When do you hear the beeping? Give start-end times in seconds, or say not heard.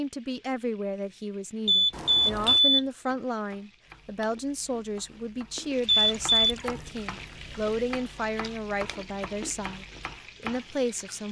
1.6-2.8, 5.8-6.5.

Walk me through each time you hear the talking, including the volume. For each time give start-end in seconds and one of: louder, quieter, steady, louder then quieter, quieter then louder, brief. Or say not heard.
0.0-11.2 steady.